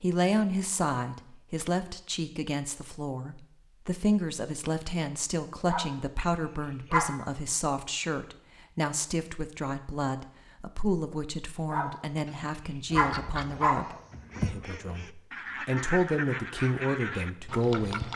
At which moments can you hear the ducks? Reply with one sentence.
The ducks can be heard from 12.9 to 18.1 s.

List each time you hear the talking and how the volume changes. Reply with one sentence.
The talking can be heard from 0.0 to 18.1 s, at a steady volume.